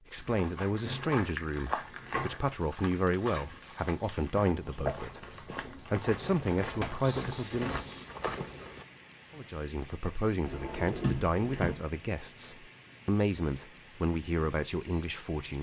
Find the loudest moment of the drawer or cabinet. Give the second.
11 s.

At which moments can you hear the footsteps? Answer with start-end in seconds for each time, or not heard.
0.1-8.8.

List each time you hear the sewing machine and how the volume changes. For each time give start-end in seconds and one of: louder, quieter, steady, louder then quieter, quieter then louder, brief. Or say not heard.
not heard.